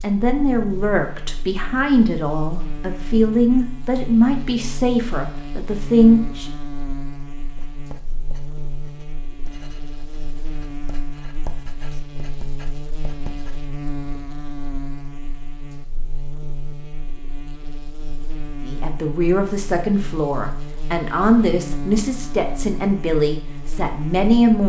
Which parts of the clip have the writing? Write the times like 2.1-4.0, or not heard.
7.5-13.8.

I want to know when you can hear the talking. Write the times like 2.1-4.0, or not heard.
0.0-6.5, 18.6-24.6.